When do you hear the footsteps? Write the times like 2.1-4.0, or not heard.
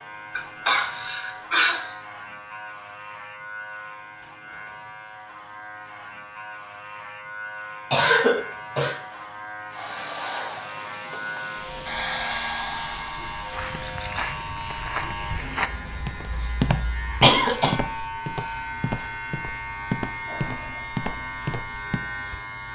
13.5-22.4.